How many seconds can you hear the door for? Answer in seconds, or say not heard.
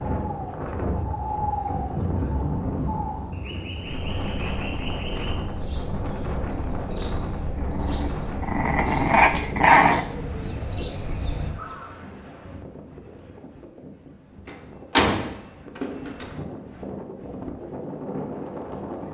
2 s.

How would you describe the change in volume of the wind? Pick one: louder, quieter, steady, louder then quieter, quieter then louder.
quieter then louder.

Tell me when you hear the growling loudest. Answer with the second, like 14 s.
10 s.